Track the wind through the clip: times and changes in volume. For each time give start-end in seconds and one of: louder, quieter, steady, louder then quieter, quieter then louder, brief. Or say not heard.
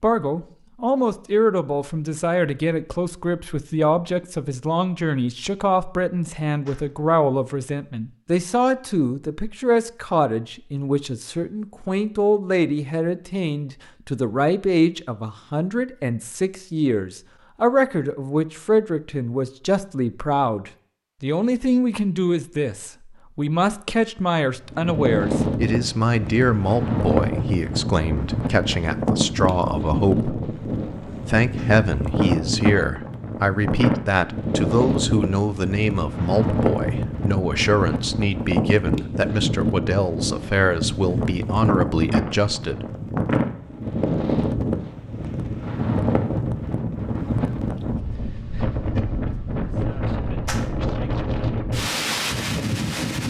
24.6-53.2 steady.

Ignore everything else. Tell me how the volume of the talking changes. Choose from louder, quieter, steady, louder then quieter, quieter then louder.
steady.